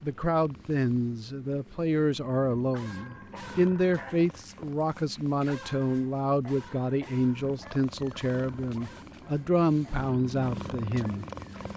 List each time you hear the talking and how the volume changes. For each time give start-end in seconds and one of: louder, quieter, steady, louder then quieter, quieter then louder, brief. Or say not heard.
0.0-11.2 steady.